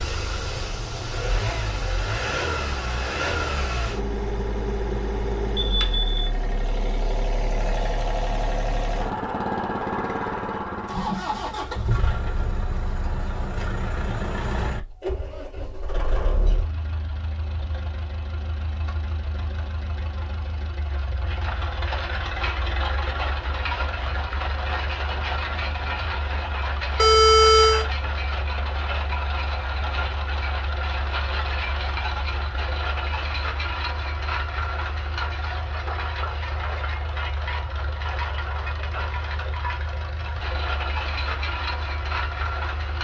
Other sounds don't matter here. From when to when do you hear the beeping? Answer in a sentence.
The beeping can be heard from 5.6 to 6.2 s and from 26.9 to 27.9 s.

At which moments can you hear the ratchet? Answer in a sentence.
The ratchet can't be heard in this clip.